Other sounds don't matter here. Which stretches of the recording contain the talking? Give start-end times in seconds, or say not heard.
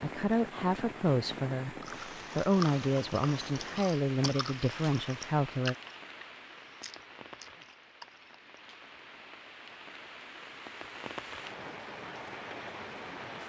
0.0-1.8, 2.4-5.8.